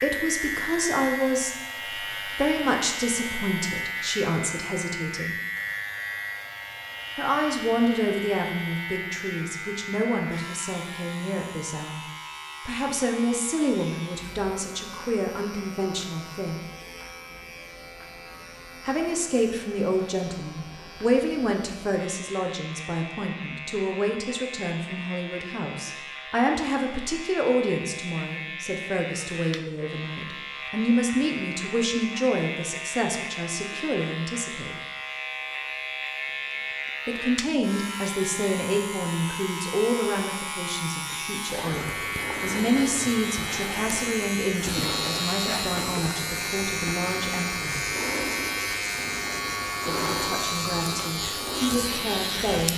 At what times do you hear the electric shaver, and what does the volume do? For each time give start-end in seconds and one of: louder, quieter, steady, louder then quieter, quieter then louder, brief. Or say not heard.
0.0-52.7 quieter then louder.